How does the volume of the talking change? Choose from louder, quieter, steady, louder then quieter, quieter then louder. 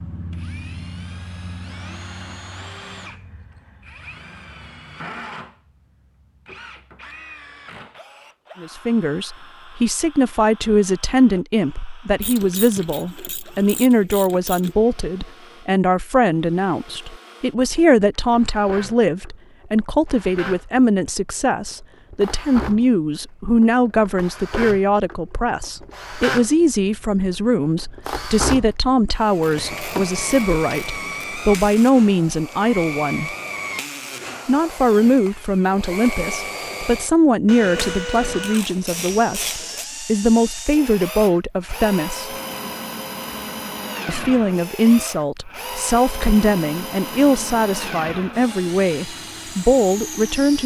steady.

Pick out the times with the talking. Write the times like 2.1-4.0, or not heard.
8.6-33.4, 34.5-42.3, 44.0-50.6.